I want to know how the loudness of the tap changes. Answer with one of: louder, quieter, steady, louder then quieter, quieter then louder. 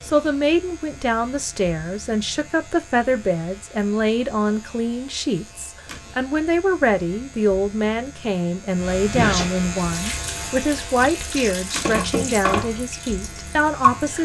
louder then quieter.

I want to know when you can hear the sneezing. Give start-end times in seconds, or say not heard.
9.1-9.6.